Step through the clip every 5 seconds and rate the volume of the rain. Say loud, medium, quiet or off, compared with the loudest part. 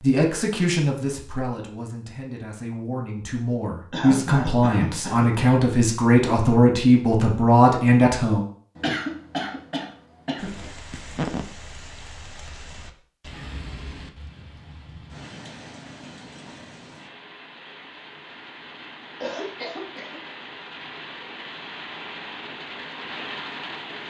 off, off, loud, medium, loud.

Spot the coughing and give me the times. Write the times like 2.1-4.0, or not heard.
3.9-5.5, 8.8-10.7, 19.2-20.3.